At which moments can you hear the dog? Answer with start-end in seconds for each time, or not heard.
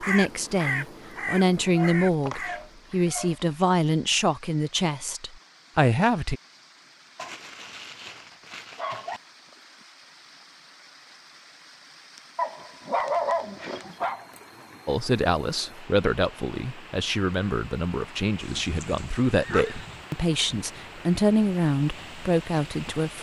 1.7-3.6, 7.2-9.2, 12.3-14.2, 18.4-20.1.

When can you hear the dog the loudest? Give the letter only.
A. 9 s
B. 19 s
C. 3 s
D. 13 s
D.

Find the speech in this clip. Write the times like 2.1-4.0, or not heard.
0.0-6.4, 14.8-23.1.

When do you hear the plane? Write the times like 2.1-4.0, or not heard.
not heard.